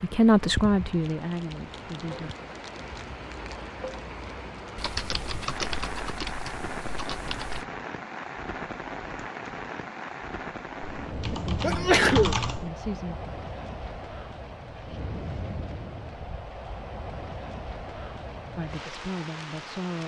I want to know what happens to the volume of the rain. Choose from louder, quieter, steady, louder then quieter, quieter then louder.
steady.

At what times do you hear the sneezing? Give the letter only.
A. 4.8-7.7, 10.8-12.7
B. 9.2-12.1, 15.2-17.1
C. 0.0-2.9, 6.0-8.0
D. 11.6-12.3
D.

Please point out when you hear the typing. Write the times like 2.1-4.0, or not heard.
4.8-7.7, 10.8-12.7.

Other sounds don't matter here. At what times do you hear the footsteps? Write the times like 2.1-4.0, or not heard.
not heard.